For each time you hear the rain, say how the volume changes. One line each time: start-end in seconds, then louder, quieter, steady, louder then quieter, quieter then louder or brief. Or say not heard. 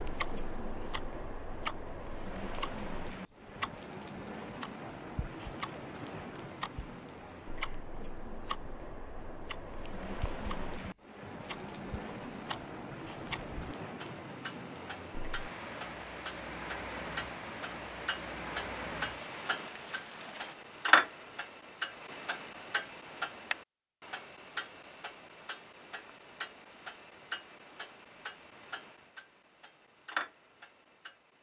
0.0-20.6 steady.